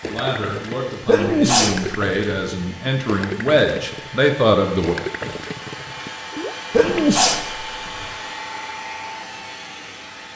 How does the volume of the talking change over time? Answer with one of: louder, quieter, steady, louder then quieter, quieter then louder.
louder.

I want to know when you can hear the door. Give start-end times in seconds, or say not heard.
not heard.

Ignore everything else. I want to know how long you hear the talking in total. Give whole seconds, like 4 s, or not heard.
5 s.